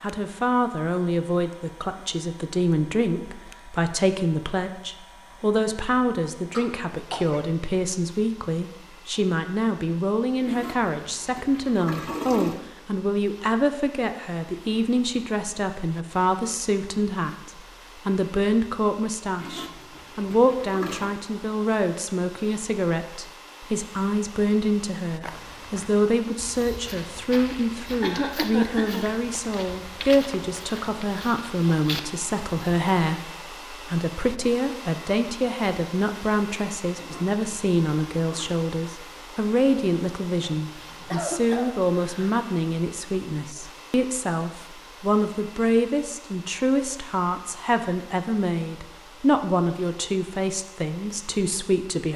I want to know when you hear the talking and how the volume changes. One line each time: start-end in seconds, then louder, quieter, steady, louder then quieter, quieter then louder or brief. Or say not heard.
0.0-52.1 steady.